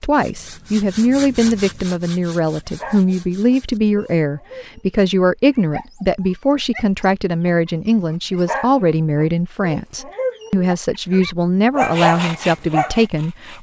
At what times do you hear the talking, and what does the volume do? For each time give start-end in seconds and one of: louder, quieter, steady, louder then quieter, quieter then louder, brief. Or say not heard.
0.0-13.5 steady.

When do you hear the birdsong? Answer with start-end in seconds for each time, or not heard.
not heard.